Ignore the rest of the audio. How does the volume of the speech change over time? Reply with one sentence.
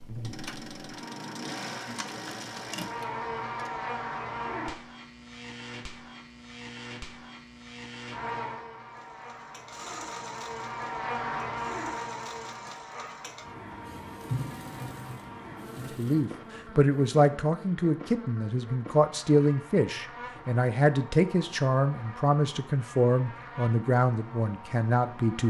The volume of the speech stays about the same.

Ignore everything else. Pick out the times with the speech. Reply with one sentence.
You can hear the speech from 15.9 to 25.4 s.